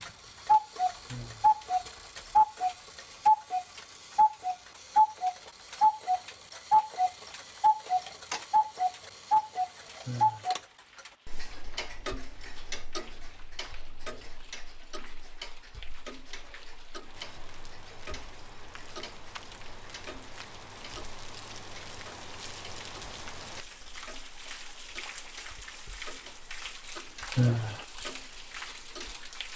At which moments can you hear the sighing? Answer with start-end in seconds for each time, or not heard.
1.1-1.6, 10.1-10.6, 27.4-27.9.